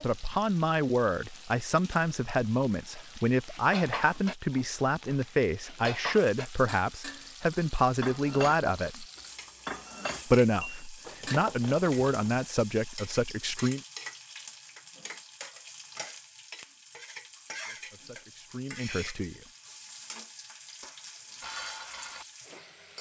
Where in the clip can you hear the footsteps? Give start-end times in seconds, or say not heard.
not heard.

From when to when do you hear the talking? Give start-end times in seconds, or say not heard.
0.0-9.1, 10.2-13.8, 17.6-19.5.